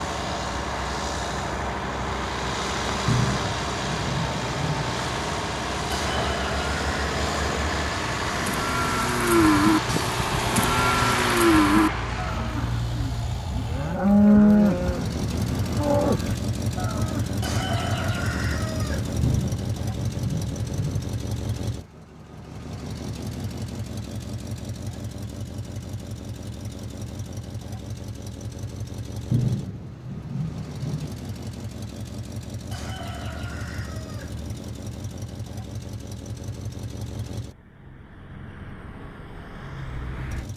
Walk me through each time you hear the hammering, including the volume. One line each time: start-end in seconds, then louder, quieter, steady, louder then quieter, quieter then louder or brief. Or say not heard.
not heard.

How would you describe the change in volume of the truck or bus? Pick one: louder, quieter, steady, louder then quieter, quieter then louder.
quieter.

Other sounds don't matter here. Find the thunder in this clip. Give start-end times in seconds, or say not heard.
3.0-4.9, 19.2-21.1, 29.3-31.1.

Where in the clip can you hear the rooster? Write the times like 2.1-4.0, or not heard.
5.9-7.9, 17.4-19.3, 32.7-34.5.